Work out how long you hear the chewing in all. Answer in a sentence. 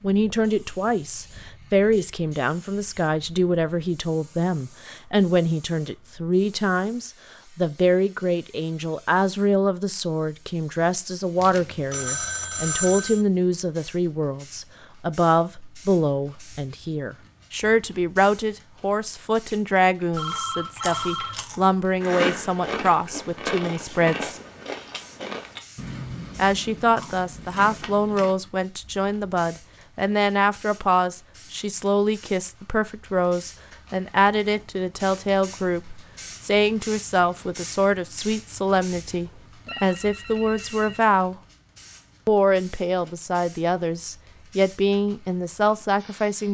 The chewing can be heard for 8 seconds in total.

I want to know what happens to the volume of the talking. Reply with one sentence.
The loudness of the talking stays about the same.